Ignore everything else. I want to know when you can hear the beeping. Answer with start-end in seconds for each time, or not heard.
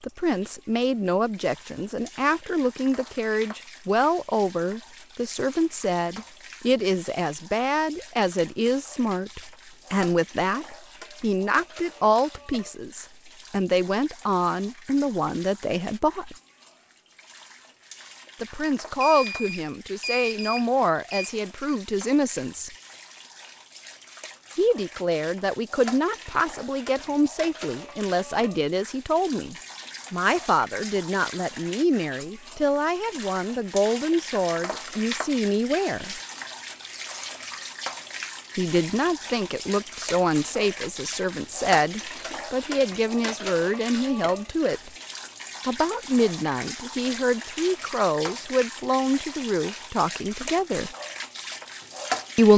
19.0-21.4.